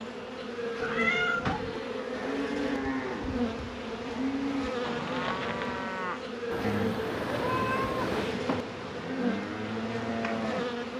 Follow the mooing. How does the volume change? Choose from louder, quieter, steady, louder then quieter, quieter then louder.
steady.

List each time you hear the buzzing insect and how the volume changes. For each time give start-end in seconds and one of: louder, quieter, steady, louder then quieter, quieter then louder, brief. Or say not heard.
0.0-10.9 steady.